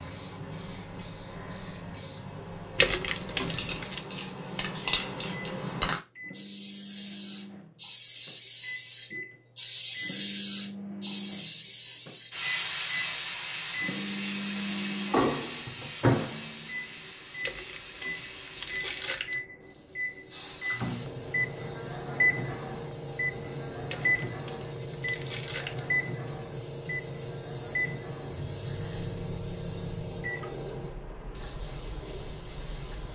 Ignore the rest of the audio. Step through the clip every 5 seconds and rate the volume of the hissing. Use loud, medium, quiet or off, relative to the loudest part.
medium, loud, loud, medium, medium, medium, medium.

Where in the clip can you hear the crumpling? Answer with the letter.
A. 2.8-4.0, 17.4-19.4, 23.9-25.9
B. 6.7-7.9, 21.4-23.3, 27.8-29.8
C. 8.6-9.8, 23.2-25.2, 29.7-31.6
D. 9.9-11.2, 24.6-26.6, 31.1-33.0
A.